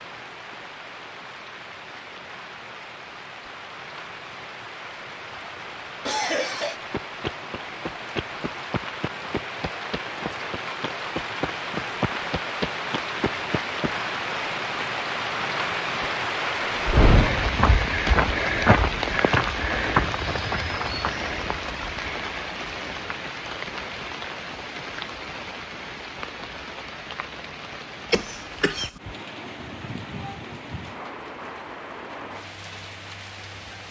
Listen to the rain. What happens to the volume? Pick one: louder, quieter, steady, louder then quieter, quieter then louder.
louder then quieter.